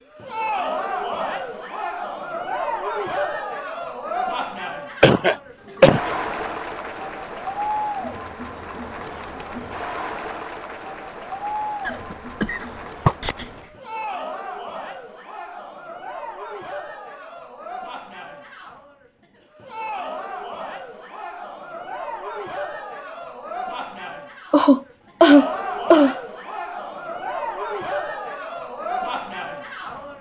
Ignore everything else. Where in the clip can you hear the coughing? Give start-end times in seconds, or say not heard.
5.0-6.2, 11.8-13.4, 24.5-26.1.